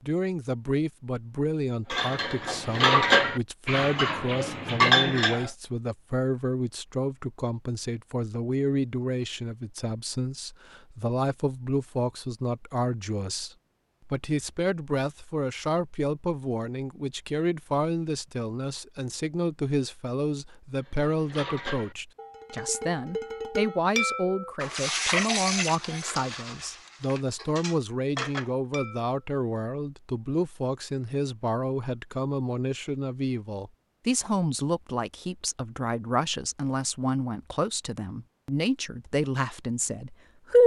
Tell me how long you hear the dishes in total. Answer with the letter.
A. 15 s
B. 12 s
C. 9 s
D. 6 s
B.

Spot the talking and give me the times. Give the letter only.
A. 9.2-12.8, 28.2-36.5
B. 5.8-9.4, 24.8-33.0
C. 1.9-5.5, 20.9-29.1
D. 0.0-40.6
D.